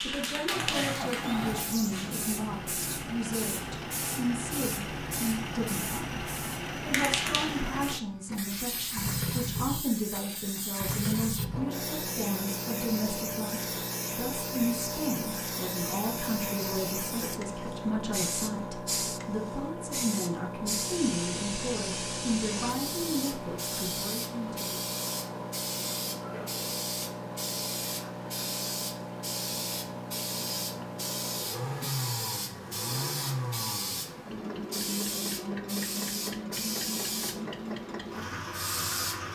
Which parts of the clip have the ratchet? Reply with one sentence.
You can't hear the ratchet here.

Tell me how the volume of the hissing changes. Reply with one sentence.
The volume of the hissing stays about the same.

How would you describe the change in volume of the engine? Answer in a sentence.
The loudness of the engine stays about the same.